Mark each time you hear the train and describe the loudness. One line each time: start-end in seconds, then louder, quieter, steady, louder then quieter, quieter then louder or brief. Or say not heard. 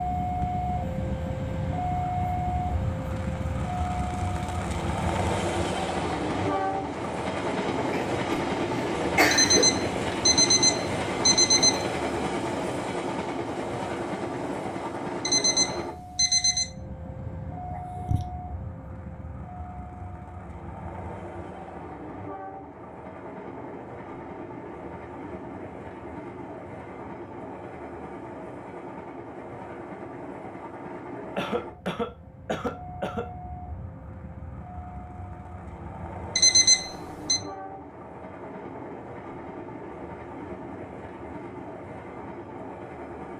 0.0-43.3 quieter.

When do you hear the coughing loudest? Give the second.
9 s.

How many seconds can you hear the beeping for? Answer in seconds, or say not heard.
5 s.